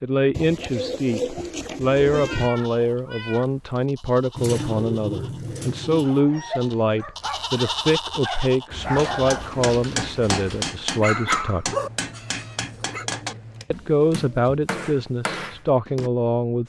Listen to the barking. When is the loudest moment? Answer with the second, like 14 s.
11 s.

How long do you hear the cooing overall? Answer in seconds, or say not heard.
8 s.